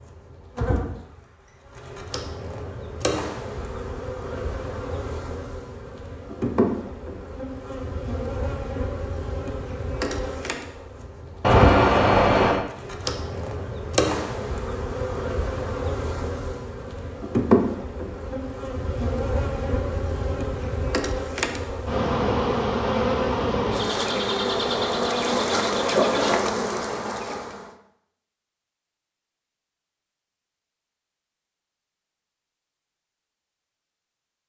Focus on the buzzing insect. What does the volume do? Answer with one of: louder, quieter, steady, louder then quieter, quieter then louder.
louder.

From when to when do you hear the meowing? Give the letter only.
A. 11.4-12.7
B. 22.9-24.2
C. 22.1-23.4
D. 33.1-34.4
A.